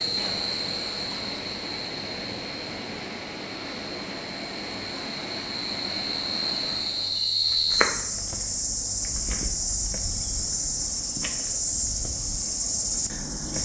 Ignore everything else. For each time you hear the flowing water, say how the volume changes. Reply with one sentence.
The flowing water can be heard from 0.0 to 7.2 s, at a steady volume.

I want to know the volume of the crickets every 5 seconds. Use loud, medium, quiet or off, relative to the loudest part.
medium, loud, loud.